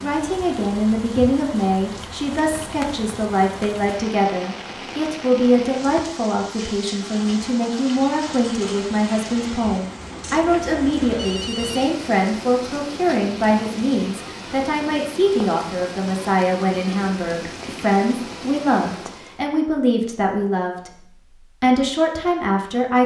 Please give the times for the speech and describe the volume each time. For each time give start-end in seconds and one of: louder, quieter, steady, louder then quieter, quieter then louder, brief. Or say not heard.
0.0-23.0 steady.